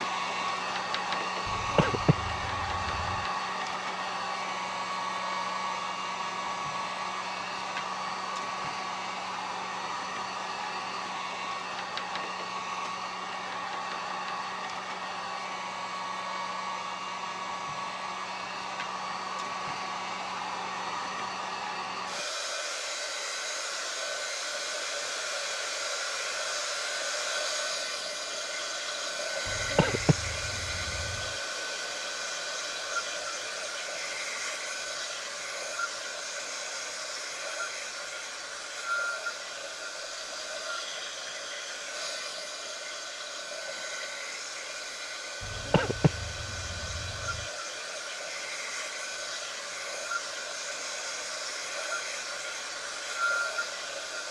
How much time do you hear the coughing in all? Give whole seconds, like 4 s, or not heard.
6 s.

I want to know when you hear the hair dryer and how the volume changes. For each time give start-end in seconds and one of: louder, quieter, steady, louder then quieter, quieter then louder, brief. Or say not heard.
0.0-54.2 steady.